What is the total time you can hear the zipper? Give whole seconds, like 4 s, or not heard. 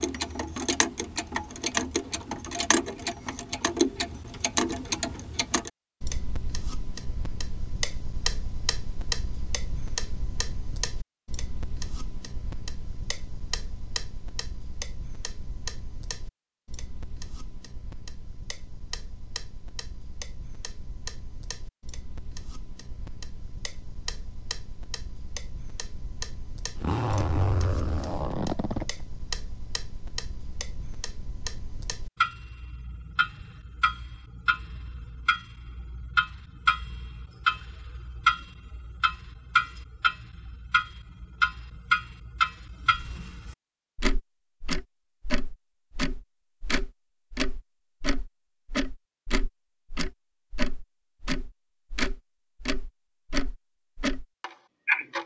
2 s.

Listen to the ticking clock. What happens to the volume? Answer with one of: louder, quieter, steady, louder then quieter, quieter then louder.
quieter then louder.